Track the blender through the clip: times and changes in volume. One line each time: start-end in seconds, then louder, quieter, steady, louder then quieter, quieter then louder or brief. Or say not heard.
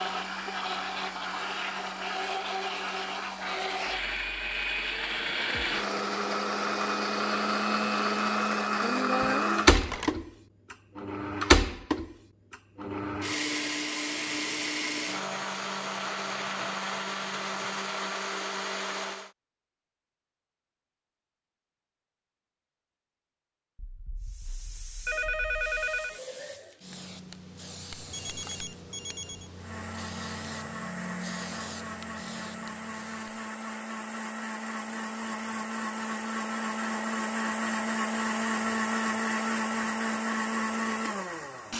0.0-19.3 louder then quieter
29.6-41.7 louder.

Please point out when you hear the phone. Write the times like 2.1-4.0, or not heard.
9.7-10.2, 23.8-26.2, 28.1-29.5.